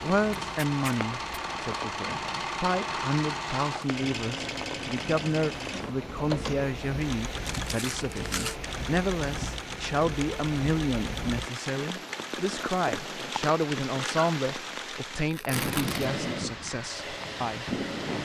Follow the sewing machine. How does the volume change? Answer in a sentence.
The loudness of the sewing machine goes down.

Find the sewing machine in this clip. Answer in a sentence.
The sewing machine can be heard from 0.0 to 18.2 s.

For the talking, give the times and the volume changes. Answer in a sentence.
The talking can be heard from 0.0 to 17.6 s, at a steady volume.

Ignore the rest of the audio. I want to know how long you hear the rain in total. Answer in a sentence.
You can hear the rain for 18 seconds altogether.